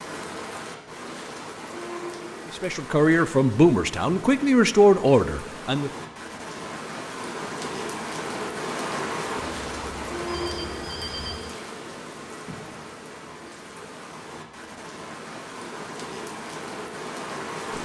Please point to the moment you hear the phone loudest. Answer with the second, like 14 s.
11 s.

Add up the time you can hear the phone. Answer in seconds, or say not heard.
2 s.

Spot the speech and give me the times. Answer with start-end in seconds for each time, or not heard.
2.5-5.9.